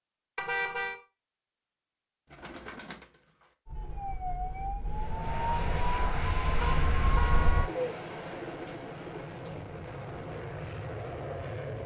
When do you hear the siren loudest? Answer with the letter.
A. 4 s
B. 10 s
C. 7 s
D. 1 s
C.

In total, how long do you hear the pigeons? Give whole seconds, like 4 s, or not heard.
3 s.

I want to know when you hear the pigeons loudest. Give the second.
8 s.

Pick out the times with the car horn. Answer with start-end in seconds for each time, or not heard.
0.3-0.9, 6.6-7.7.